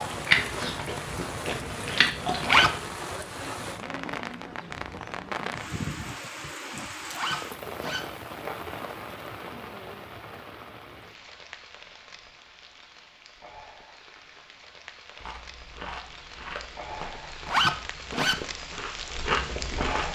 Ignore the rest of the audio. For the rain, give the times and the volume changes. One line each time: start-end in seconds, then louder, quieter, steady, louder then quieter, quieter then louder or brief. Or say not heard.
0.0-20.1 quieter then louder.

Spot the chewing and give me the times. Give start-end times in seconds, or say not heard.
0.0-2.9, 15.2-20.1.